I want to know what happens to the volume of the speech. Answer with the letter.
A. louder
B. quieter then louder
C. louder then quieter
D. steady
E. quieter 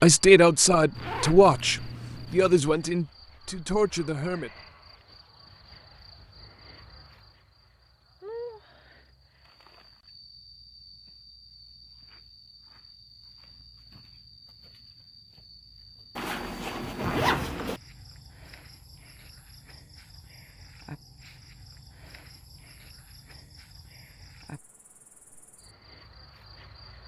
E.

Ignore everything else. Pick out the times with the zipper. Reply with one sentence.
You can hear the zipper from 0.9 to 2.6 s and from 16.1 to 17.8 s.